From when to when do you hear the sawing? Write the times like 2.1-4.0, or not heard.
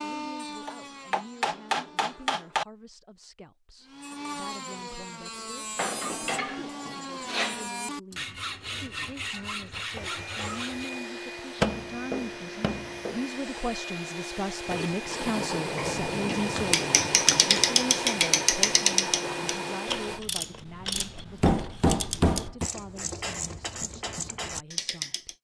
0.0-2.4, 3.9-11.0.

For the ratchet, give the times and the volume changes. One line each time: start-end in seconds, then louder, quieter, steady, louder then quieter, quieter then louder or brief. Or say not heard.
15.8-25.3 quieter.